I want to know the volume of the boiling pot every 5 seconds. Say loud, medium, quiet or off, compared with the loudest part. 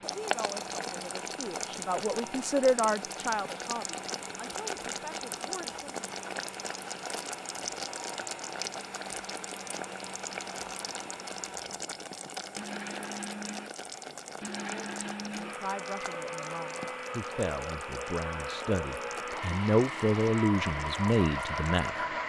loud, loud, loud, medium, quiet.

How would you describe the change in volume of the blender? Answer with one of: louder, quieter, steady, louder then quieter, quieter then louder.
louder.